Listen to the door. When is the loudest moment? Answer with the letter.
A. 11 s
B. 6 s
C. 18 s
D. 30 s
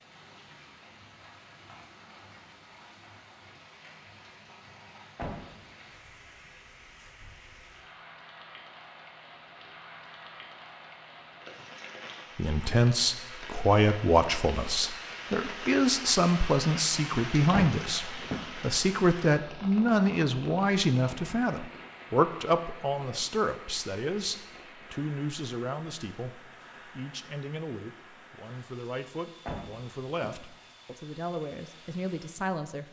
C.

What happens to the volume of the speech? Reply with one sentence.
The loudness of the speech goes down.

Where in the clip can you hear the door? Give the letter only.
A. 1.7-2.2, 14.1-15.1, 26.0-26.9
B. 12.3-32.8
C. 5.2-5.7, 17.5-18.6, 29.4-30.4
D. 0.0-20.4
C.